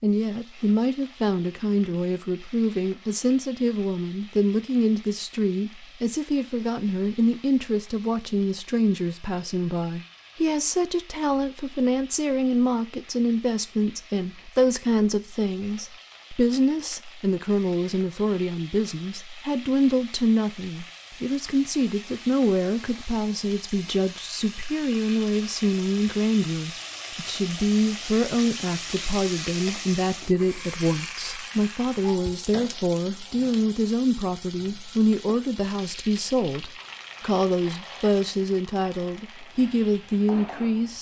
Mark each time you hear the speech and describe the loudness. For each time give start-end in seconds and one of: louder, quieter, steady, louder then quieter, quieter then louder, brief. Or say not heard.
0.0-40.9 steady.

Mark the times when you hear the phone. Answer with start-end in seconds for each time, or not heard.
not heard.